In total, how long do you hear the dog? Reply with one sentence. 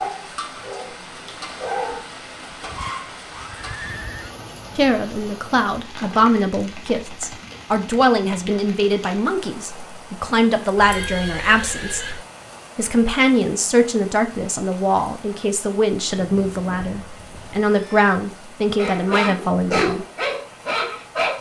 The dog can be heard for 5 seconds in total.